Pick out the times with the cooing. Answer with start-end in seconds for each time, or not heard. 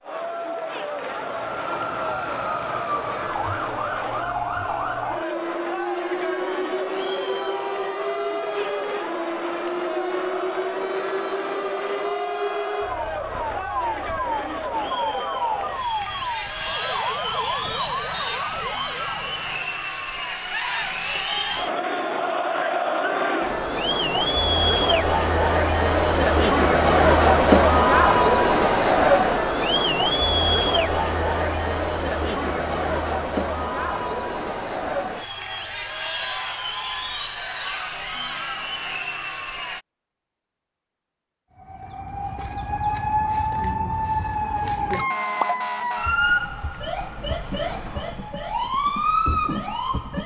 not heard.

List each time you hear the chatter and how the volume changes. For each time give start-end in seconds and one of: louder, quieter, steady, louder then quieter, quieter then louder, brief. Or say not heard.
0.0-39.9 louder then quieter.